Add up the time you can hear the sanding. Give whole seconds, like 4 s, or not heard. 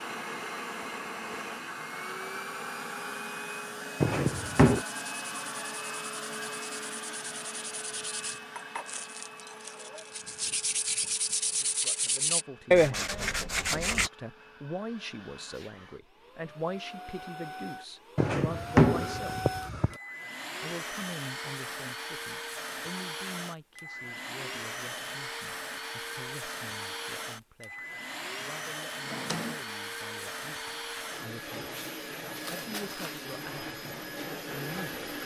10 s.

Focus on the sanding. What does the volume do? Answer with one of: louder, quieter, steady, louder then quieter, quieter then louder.
louder.